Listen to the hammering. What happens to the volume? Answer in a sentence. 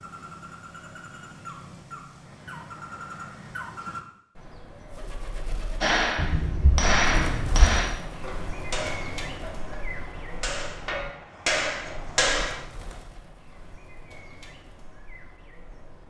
The loudness of the hammering goes down, then up.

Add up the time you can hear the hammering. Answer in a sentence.
The hammering can be heard for 7 seconds in total.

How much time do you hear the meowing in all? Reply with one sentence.
The meowing can be heard for 2 seconds in total.